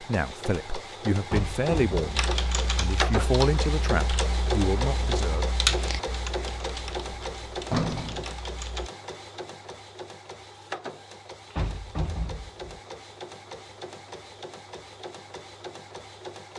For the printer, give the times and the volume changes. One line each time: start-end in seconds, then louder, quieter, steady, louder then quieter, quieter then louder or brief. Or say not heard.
0.0-16.5 quieter.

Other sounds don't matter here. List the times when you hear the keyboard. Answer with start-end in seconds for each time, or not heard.
2.1-8.9.